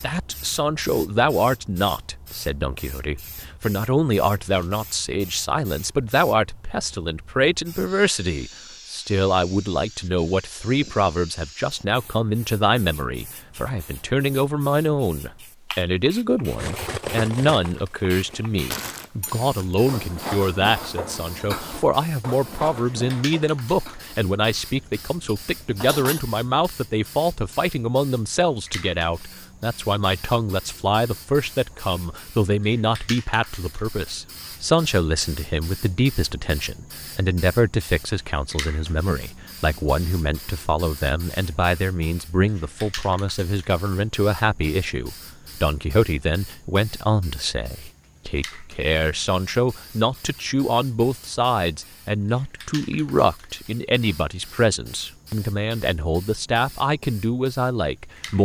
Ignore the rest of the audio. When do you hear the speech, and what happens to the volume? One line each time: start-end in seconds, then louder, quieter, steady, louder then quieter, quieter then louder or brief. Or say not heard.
0.0-58.4 steady.